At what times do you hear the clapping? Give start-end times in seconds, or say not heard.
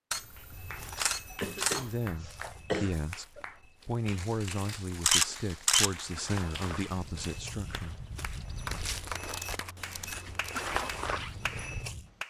0.3-12.2.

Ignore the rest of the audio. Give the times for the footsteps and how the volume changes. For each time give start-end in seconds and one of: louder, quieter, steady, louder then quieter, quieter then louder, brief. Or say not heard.
0.5-12.1 quieter then louder.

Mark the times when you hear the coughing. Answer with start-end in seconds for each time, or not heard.
0.9-3.5.